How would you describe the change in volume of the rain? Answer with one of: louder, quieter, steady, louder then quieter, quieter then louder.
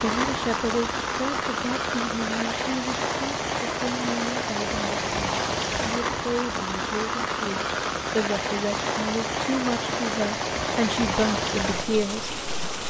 steady.